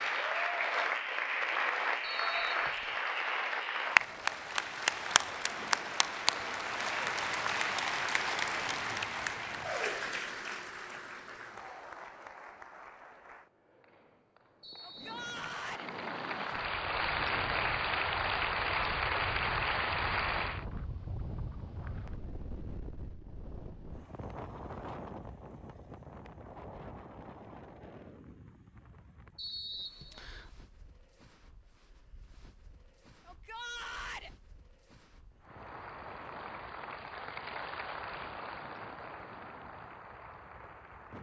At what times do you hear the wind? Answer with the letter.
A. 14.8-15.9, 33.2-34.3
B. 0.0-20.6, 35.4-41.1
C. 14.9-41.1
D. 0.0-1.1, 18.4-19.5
C.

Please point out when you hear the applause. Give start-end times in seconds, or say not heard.
0.0-20.6, 35.4-41.1.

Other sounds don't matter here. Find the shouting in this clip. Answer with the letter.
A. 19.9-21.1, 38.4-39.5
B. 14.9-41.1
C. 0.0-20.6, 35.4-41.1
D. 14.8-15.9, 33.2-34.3
D.